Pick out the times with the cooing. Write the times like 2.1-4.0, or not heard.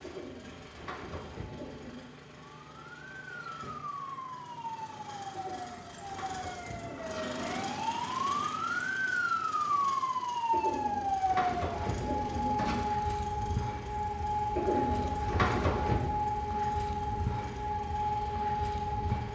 0.0-2.0, 5.3-7.8, 10.5-12.8, 14.6-16.1.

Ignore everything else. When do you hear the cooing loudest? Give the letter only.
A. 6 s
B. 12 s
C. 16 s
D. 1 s
C.